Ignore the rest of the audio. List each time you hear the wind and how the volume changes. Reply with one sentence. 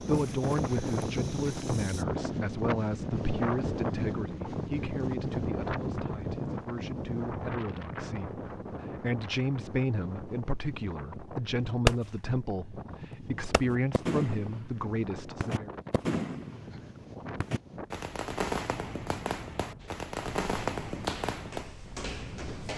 You can hear the wind from 0.0 to 22.7 s, getting quieter.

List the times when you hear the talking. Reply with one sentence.
The talking can be heard from 0.0 to 15.8 s.